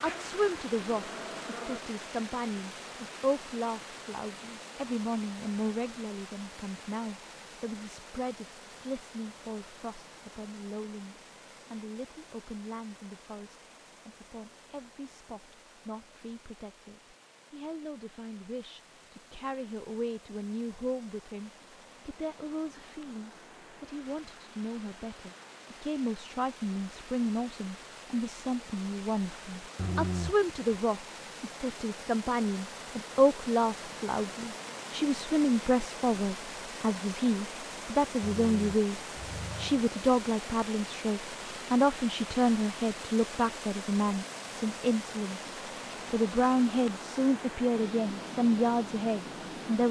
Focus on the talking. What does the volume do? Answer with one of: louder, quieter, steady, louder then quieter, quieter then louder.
quieter then louder.